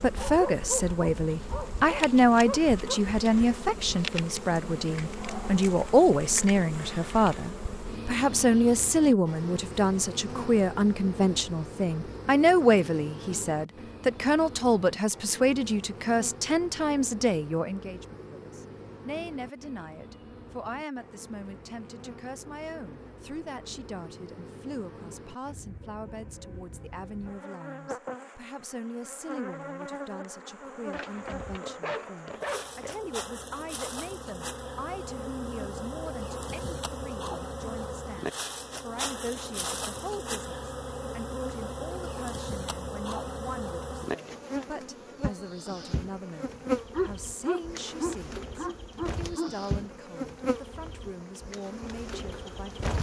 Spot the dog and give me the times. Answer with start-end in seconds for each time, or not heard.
0.1-3.0, 30.9-33.0, 46.9-49.5.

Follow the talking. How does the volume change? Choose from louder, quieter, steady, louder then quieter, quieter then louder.
quieter.